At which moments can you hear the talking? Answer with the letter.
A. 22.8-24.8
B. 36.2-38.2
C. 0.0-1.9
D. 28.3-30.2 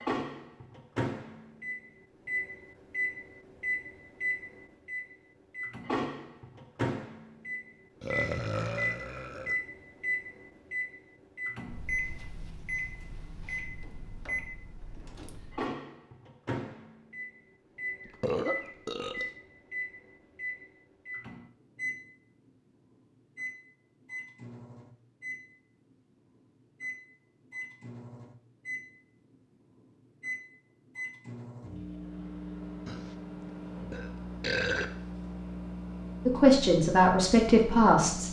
B.